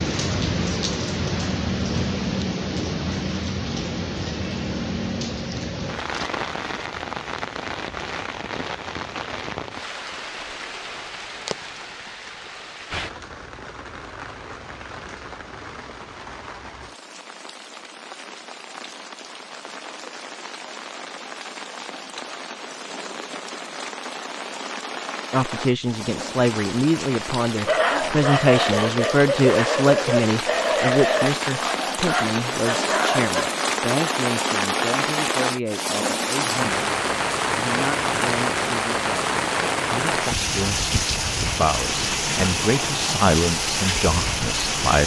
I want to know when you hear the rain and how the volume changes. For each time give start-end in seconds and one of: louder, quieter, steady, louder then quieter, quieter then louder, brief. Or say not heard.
0.0-45.0 quieter then louder.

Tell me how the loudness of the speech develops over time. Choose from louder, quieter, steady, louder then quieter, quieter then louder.
quieter then louder.